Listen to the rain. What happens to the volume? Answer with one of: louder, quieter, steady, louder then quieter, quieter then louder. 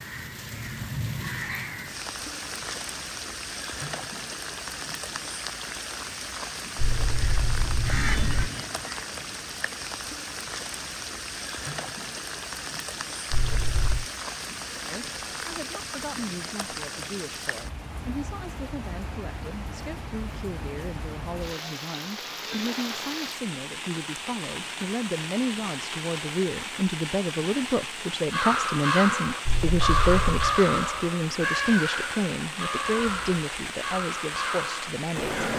steady.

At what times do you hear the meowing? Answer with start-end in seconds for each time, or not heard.
6.8-8.5, 13.3-14.1, 29.4-30.5.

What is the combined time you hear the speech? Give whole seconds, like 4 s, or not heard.
21 s.